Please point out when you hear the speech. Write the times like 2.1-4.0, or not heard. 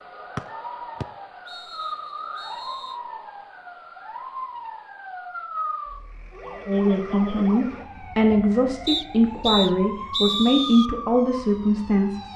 6.7-12.2.